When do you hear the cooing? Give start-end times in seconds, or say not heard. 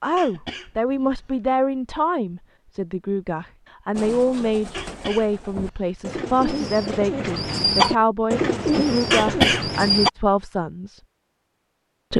4.0-10.1.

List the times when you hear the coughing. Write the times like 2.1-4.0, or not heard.
0.1-1.6, 4.7-6.2, 9.1-9.7.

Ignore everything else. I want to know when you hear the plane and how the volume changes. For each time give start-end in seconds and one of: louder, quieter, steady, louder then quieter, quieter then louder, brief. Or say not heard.
not heard.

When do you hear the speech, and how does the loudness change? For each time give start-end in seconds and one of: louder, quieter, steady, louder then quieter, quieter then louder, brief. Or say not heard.
0.0-11.0 steady.